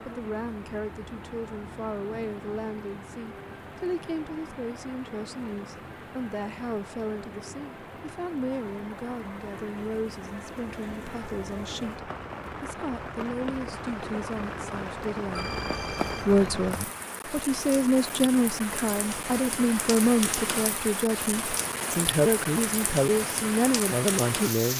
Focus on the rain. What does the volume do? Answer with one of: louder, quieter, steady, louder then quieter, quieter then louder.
louder.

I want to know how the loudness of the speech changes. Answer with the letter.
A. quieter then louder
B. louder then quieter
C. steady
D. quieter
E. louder
E.